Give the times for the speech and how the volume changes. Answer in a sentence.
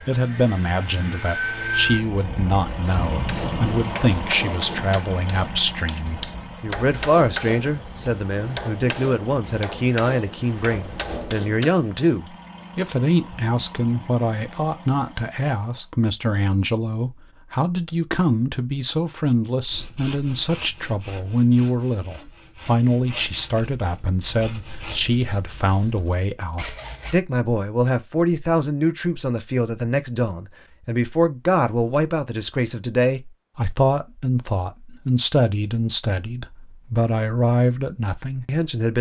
The speech can be heard from 0.1 to 38.9 s, at a steady volume.